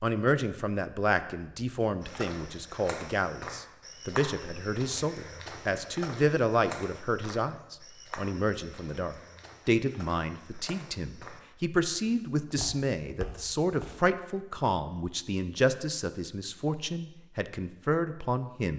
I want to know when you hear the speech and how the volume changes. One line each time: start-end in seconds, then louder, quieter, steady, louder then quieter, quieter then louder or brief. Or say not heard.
0.0-18.7 steady.